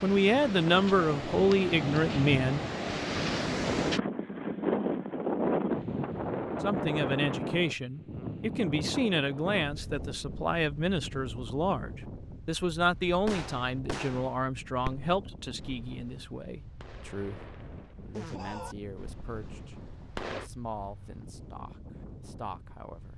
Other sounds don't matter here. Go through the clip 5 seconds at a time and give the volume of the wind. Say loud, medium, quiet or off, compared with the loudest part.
loud, loud, quiet, quiet, quiet.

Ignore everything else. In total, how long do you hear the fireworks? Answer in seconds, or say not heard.
7 s.